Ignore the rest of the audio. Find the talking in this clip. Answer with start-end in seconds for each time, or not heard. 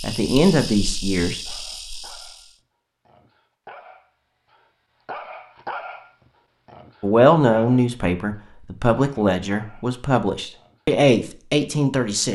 0.0-1.4, 7.0-12.3.